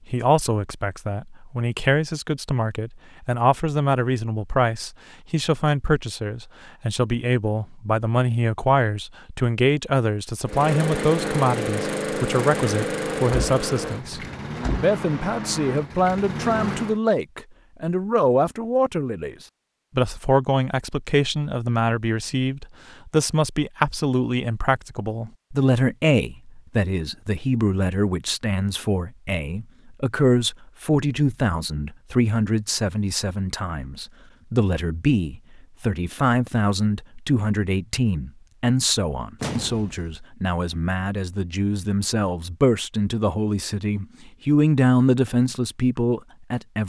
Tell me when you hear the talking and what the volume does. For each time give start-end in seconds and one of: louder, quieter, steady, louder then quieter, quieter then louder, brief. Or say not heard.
0.1-46.8 steady.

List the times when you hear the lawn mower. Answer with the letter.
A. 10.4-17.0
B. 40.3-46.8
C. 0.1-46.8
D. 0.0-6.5
A.